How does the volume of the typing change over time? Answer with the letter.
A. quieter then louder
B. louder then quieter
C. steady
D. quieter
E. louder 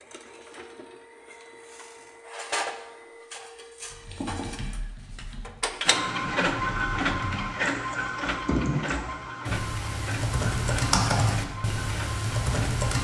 E.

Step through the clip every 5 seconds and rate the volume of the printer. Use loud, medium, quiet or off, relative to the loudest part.
medium, loud, medium.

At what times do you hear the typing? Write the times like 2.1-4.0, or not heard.
3.9-12.9.